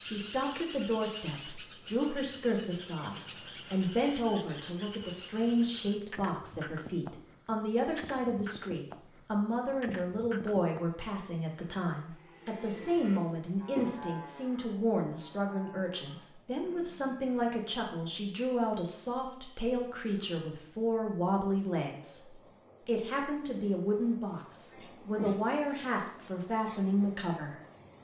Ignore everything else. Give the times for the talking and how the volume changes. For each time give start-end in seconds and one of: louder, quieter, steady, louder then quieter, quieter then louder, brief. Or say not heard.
0.0-27.6 steady.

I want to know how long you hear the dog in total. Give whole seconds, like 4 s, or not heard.
not heard.